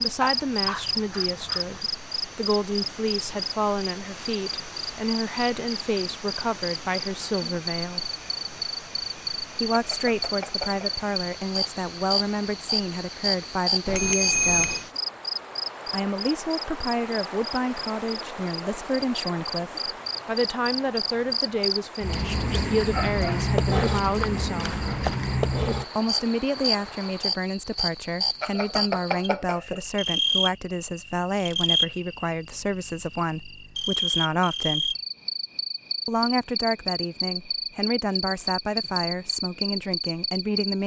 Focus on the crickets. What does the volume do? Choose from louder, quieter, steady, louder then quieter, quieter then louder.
steady.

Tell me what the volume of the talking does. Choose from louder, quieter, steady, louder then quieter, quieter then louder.
steady.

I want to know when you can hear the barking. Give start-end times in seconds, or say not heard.
0.2-1.9, 22.5-25.2.